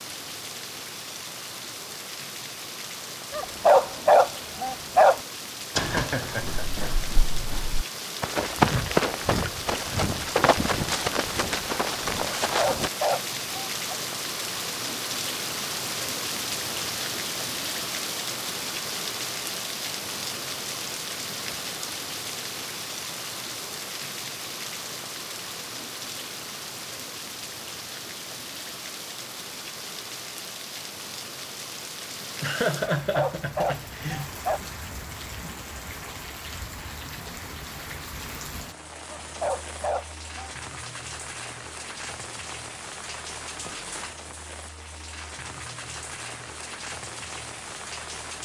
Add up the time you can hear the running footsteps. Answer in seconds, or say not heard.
7 s.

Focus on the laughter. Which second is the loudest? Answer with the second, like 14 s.
33 s.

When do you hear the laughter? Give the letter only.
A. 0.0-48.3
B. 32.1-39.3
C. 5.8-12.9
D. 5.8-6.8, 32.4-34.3
D.